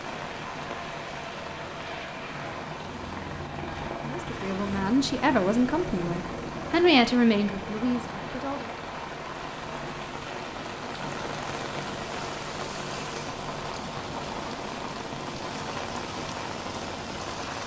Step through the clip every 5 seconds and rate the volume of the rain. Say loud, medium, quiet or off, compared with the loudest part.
medium, medium, loud, loud.